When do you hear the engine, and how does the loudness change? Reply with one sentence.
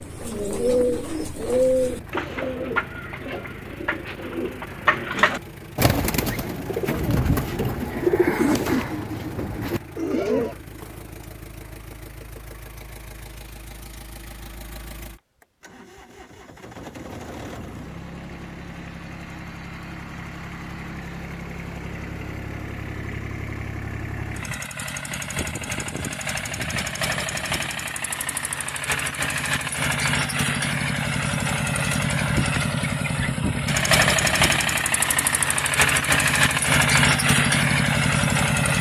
The engine can be heard from 0.0 to 38.7 s, getting louder.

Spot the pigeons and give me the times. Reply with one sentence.
You can hear the pigeons from 0.0 to 10.6 s.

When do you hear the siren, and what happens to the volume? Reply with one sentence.
You can't hear the siren here.